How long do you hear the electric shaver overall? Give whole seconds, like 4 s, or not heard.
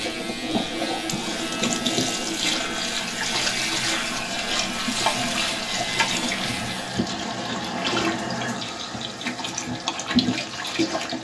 7 s.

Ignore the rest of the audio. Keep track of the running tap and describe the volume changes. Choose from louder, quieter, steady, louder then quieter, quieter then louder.
steady.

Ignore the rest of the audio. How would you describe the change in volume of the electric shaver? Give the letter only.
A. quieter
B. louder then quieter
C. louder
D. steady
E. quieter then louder
D.